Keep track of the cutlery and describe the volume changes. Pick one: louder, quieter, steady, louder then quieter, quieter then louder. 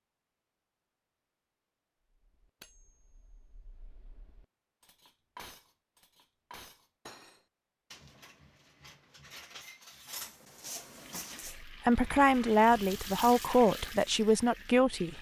louder.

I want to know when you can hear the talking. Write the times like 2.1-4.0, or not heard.
11.7-15.1.